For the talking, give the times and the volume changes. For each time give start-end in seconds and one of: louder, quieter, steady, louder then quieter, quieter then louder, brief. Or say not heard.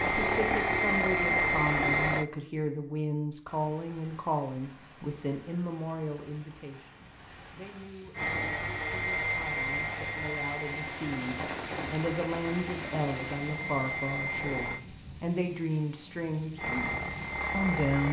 0.1-18.0 quieter then louder.